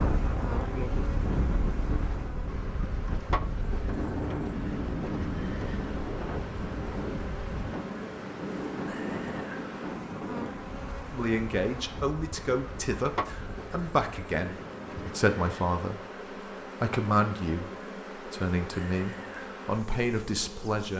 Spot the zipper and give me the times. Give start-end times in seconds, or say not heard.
not heard.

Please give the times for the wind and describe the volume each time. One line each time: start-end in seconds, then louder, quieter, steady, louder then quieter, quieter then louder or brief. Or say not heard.
0.0-15.2 quieter.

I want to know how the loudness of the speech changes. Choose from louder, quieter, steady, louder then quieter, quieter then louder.
steady.